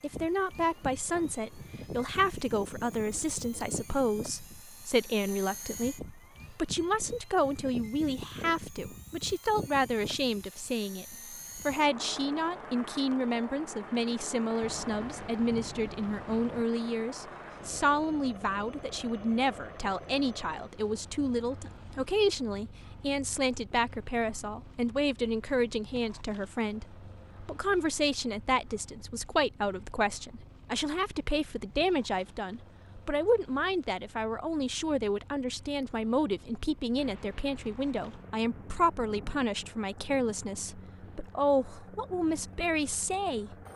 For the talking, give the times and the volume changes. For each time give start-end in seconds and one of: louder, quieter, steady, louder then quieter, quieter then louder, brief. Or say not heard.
0.0-43.5 steady.